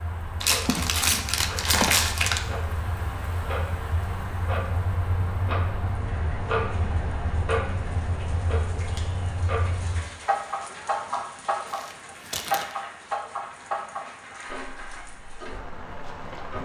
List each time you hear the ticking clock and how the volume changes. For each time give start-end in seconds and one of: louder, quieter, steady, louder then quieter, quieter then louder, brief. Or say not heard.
0.0-16.6 louder then quieter.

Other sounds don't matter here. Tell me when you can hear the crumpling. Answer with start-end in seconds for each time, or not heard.
0.4-2.4, 11.7-12.8.